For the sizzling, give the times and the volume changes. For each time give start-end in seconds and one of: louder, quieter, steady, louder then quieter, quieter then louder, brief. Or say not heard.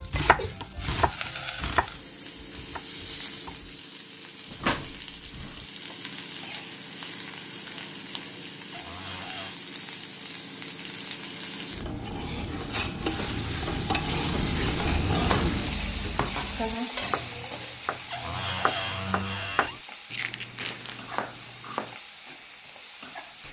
0.0-23.4 louder then quieter.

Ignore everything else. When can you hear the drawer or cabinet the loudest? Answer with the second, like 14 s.
19 s.